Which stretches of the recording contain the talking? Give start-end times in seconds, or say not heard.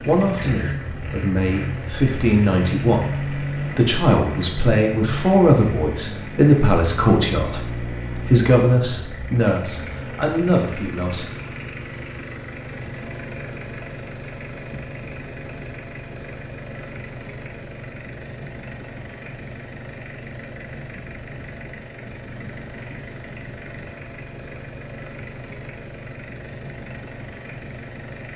0.0-11.2.